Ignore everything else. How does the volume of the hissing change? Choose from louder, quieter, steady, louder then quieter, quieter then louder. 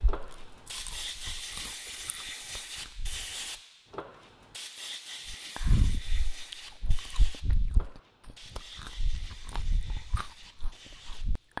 quieter.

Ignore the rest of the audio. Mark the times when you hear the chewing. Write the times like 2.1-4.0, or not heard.
0.0-3.2, 5.2-11.5.